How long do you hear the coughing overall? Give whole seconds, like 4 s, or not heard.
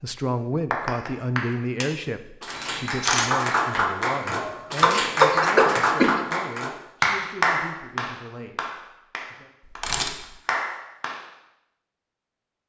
2 s.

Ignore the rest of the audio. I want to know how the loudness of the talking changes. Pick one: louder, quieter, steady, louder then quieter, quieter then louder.
quieter.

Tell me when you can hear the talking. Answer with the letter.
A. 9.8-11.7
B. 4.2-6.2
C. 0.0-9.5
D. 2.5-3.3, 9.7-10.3
C.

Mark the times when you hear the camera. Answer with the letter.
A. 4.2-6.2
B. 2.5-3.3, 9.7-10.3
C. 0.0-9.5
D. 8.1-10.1
B.